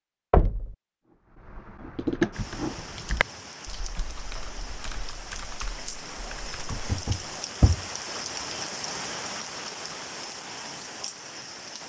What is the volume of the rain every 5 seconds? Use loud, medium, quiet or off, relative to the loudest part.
medium, loud, loud.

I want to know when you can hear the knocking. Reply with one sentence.
The knocking can be heard from 0.3 to 0.8 s and from 6.7 to 7.8 s.